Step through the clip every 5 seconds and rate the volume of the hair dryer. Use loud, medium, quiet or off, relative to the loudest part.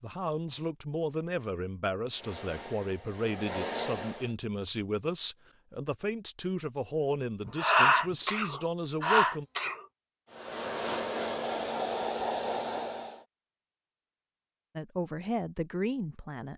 medium, off, loud, off.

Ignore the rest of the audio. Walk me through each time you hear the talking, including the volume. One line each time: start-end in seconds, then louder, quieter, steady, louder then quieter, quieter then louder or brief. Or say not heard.
0.0-9.4 steady
14.8-16.5 brief.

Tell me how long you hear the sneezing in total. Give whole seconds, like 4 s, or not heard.
2 s.